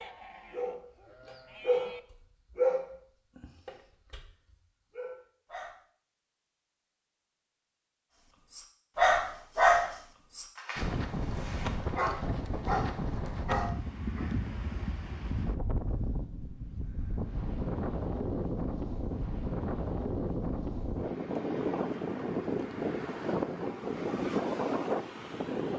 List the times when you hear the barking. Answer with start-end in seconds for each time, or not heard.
0.0-1.9, 2.5-5.8, 8.5-14.2.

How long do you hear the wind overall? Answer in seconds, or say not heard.
15 s.